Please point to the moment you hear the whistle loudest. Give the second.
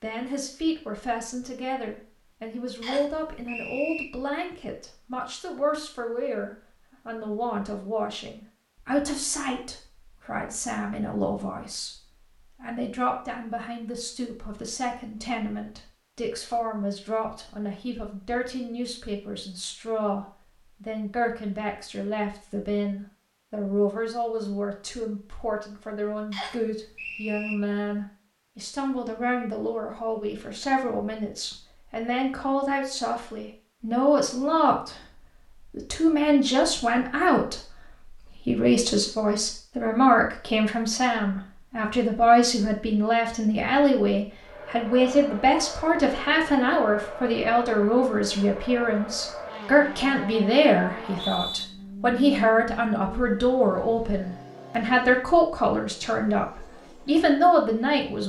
51 s.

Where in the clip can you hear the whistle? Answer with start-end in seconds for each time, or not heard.
2.8-4.0, 26.3-27.6, 50.9-51.6.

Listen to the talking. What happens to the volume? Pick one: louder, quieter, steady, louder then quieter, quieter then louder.
louder.